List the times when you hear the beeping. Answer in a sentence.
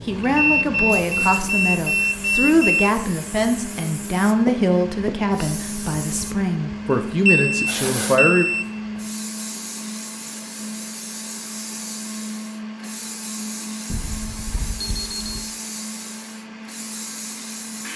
The beeping can be heard from 0.2 to 3.0 s, from 7.2 to 8.7 s and from 13.9 to 15.5 s.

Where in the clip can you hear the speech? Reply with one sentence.
You can hear the speech from 0.1 to 8.4 s.